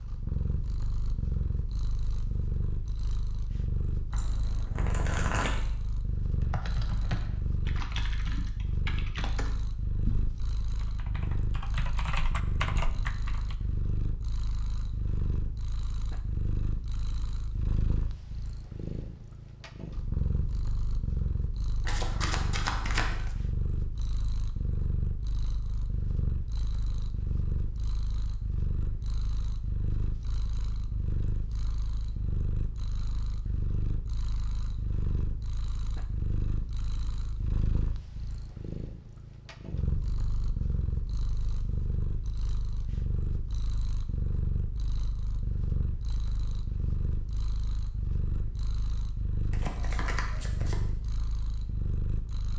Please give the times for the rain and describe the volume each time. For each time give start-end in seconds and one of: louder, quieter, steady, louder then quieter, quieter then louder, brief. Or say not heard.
not heard.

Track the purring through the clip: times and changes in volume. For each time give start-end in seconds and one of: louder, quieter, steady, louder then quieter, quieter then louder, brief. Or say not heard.
0.0-52.5 steady.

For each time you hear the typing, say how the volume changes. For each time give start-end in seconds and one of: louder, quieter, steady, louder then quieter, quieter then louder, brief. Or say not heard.
6.3-13.6 quieter then louder.